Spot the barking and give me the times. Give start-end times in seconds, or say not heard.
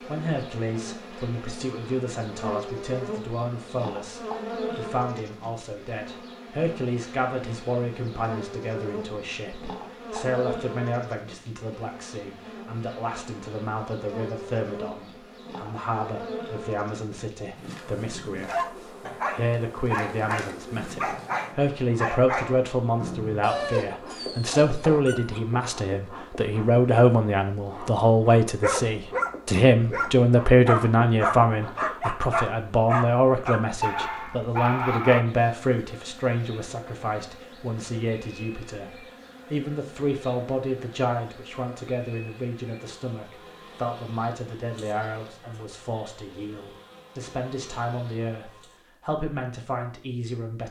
18.4-25.4, 28.6-35.2.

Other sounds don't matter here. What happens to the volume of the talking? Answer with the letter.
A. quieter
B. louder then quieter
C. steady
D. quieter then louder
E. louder
B.